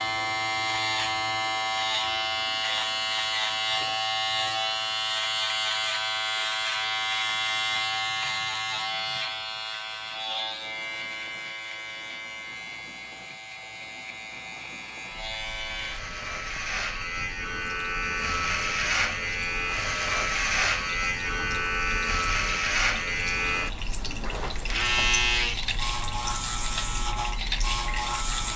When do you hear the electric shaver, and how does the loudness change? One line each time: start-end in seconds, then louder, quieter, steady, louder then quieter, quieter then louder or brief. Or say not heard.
0.0-28.5 quieter then louder.